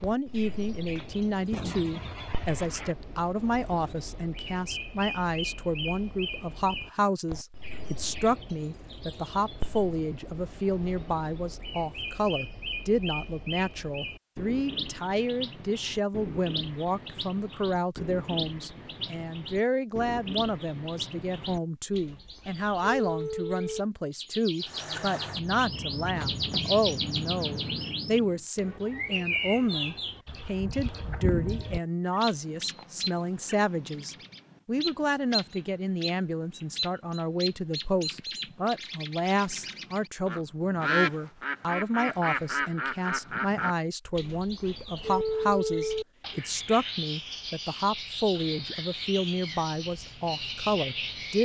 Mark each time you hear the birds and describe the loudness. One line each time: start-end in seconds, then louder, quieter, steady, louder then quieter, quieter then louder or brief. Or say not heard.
0.0-51.4 louder.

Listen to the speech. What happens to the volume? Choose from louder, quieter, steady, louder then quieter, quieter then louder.
steady.